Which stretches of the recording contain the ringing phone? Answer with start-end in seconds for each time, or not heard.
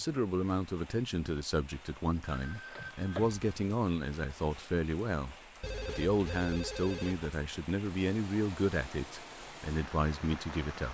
2.2-3.5, 5.6-7.2.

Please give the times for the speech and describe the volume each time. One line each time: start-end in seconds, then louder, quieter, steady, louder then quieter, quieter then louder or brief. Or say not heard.
0.0-10.8 steady.